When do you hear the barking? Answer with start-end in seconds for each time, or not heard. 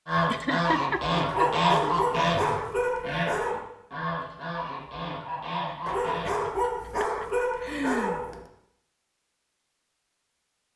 1.2-3.6, 5.8-8.4.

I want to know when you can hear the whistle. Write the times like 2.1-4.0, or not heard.
not heard.